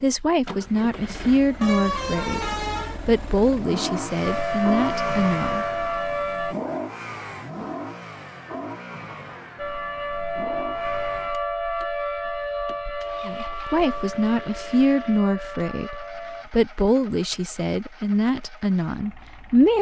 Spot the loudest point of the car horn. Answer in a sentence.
The volume of the car horn peaks at 2 seconds.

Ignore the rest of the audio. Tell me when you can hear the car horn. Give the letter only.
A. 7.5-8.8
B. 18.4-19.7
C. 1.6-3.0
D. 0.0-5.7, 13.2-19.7
C.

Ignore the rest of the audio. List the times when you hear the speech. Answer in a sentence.
You can hear the speech from 0.0 to 5.7 s and from 13.2 to 19.7 s.